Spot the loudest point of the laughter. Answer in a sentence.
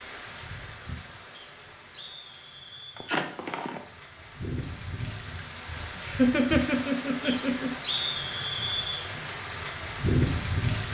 The loudest moment of the laughter is at 6 seconds.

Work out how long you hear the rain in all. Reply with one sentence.
The rain can be heard for 11 seconds in total.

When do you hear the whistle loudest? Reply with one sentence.
The volume of the whistle peaks at 8 seconds.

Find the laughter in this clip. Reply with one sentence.
You can hear the laughter from 3.0 to 3.8 s and from 6.0 to 7.7 s.